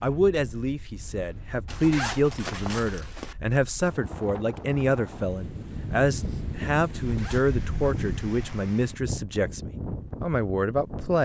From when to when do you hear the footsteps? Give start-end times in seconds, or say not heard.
not heard.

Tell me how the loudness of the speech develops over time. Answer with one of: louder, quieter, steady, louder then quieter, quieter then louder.
steady.